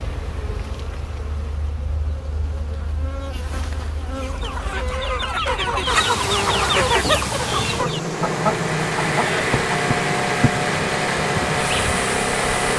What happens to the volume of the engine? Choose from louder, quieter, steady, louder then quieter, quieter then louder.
steady.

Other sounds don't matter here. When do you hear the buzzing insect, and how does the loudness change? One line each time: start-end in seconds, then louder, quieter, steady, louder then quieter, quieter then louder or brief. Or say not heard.
0.0-12.7 louder.